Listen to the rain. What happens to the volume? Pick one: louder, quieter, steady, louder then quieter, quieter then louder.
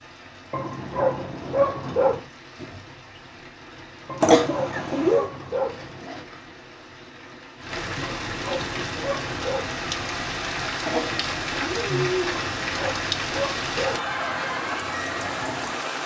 louder.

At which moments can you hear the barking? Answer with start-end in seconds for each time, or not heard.
0.5-2.2, 4.0-6.1, 8.0-9.8, 12.3-14.1.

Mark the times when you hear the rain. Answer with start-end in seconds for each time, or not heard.
0.0-16.0.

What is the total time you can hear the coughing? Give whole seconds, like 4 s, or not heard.
3 s.